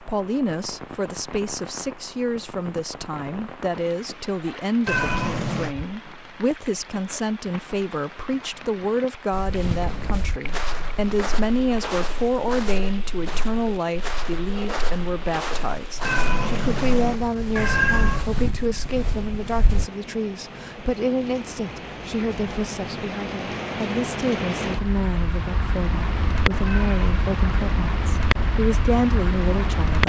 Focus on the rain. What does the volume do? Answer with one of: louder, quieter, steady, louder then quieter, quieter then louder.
louder.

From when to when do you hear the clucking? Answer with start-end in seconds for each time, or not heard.
not heard.